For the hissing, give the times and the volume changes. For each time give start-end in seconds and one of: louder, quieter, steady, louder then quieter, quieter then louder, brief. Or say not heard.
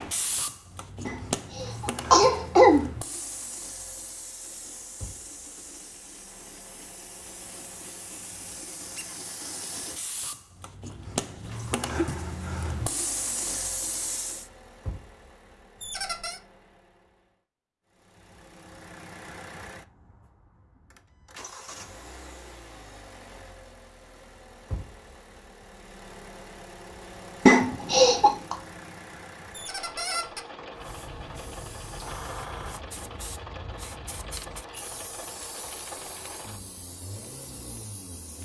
0.0-14.5 quieter then louder
30.7-38.4 quieter.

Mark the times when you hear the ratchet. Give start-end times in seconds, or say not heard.
not heard.